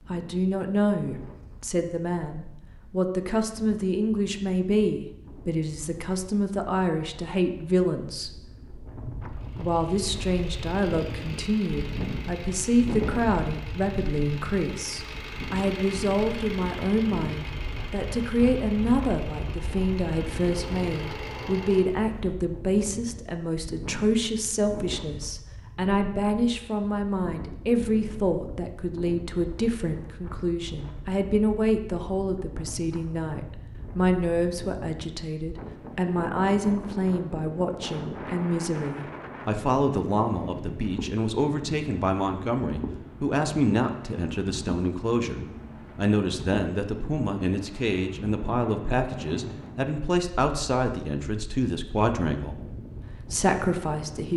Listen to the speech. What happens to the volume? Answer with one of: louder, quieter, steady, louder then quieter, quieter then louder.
steady.